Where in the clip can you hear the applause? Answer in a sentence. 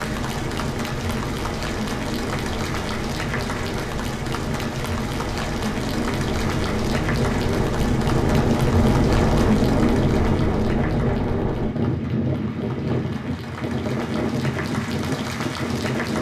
The applause can be heard from 0.0 to 16.1 s.